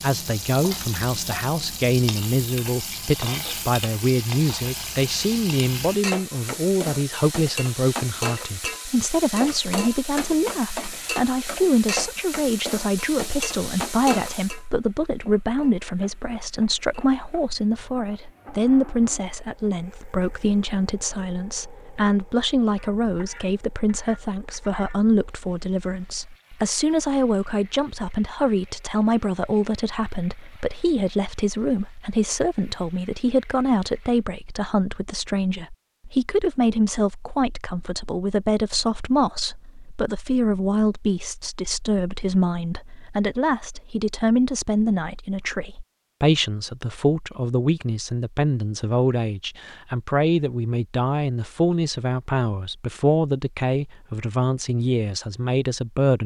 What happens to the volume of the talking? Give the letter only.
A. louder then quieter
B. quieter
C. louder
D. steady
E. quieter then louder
D.